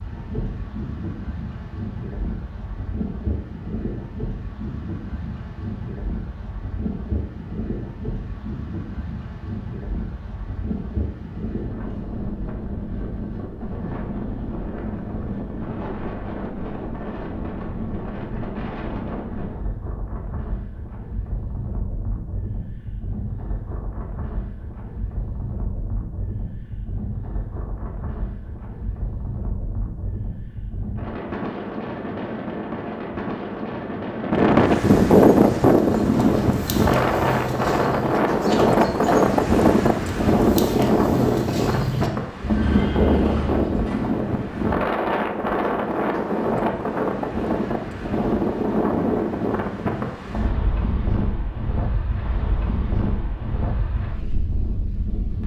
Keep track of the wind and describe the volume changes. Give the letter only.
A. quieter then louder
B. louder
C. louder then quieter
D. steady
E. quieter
C.